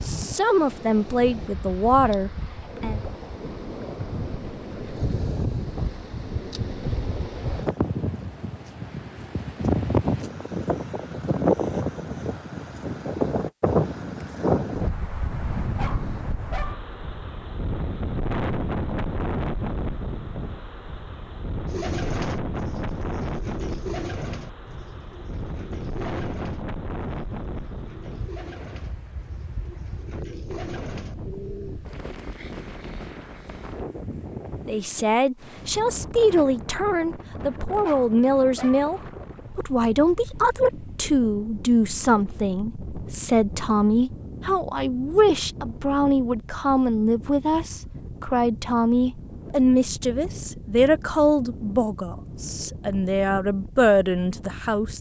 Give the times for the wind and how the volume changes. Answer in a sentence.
You can hear the wind from 0.0 to 54.9 s, getting quieter.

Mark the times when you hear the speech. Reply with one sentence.
The speech can be heard from 0.0 to 3.0 s and from 34.6 to 54.9 s.